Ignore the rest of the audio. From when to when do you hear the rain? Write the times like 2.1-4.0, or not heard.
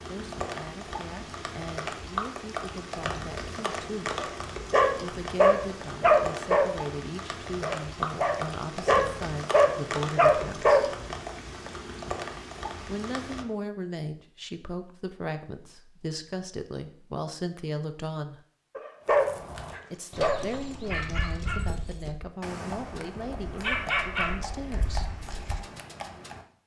0.0-13.4.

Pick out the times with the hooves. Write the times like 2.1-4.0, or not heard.
19.0-26.4.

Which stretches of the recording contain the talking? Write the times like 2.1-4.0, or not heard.
0.1-4.2, 5.0-10.9, 12.8-18.4, 19.9-25.1.